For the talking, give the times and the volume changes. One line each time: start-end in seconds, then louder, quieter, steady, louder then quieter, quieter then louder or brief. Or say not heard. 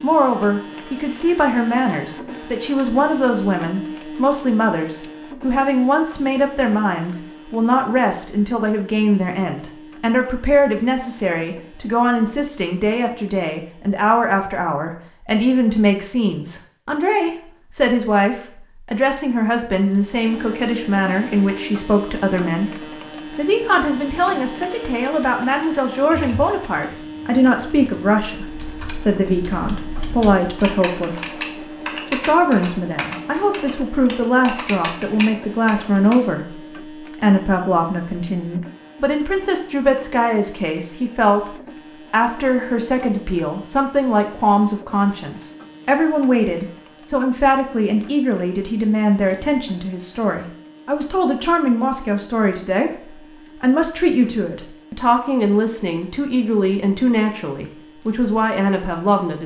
0.0-59.4 steady.